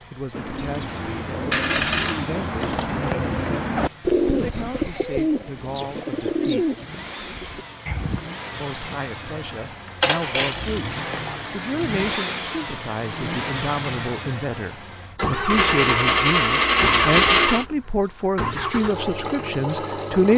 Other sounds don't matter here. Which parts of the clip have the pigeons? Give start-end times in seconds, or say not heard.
0.3-8.3.